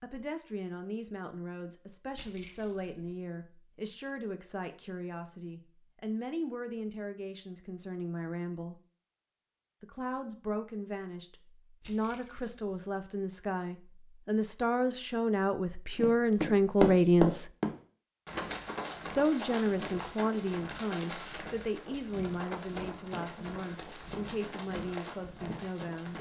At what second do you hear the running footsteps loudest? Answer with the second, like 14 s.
17 s.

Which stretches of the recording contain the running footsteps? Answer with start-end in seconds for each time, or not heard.
15.9-26.1.